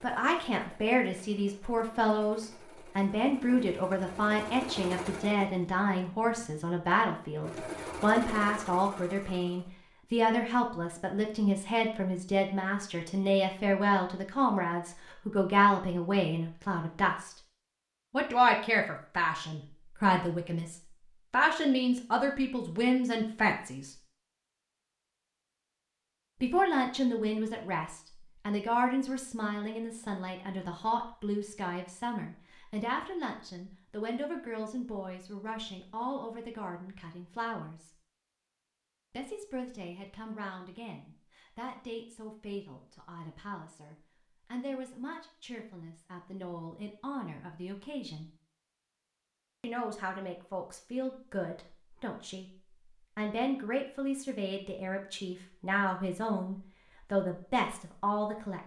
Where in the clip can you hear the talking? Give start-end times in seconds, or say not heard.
0.0-17.4, 18.1-23.9, 26.4-37.9, 39.1-48.3, 49.6-58.6.